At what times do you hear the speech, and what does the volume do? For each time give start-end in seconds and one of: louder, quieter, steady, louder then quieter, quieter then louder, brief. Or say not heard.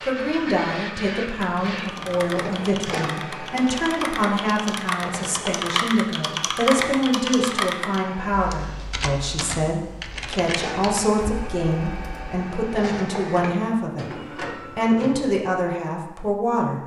0.1-16.8 steady.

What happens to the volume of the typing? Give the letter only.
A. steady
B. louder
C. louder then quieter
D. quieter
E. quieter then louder
C.